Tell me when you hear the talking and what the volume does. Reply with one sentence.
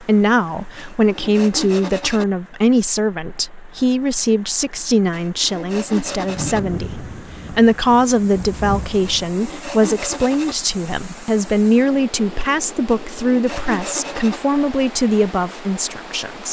You can hear the talking from 0.0 to 16.4 s, at a steady volume.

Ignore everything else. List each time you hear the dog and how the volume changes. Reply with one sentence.
The dog can't be heard in this clip.